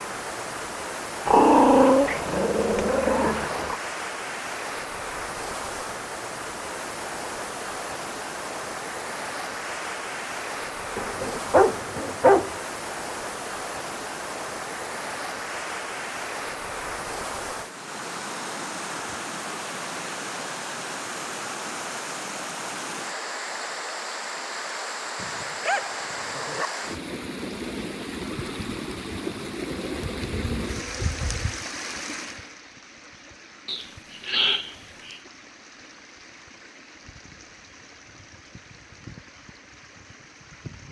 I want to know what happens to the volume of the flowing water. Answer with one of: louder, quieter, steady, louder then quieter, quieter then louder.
quieter.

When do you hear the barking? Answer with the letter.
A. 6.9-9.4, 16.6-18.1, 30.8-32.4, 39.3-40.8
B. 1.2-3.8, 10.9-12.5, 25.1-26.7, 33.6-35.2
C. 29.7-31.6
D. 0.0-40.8
B.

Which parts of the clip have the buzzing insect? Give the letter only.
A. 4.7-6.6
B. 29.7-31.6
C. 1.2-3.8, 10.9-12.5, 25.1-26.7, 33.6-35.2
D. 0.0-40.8
B.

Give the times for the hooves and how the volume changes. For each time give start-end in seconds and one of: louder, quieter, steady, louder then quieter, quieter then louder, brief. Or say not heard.
not heard.